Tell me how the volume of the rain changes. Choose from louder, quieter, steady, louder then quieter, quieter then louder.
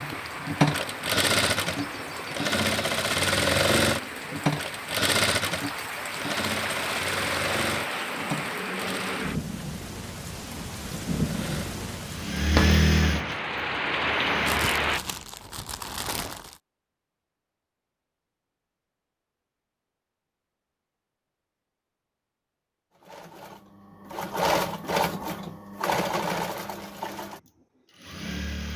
louder.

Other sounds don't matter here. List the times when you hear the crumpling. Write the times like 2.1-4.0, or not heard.
14.4-16.6.